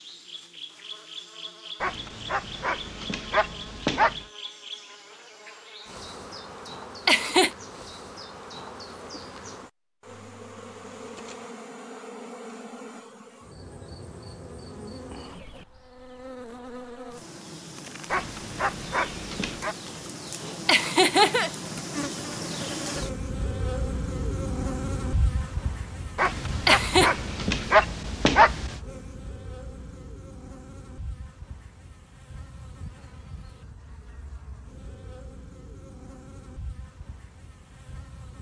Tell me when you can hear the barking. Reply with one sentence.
The barking can be heard from 1.8 to 4.2 s, from 18.1 to 19.8 s and from 26.1 to 28.8 s.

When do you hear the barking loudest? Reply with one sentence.
The volume of the barking peaks at 28 seconds.